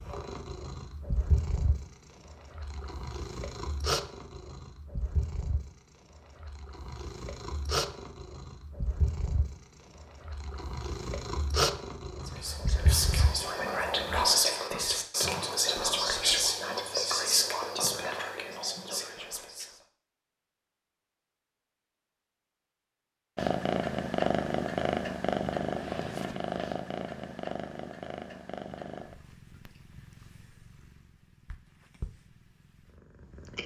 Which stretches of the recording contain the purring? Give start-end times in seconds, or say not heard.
0.0-14.2, 23.4-33.6.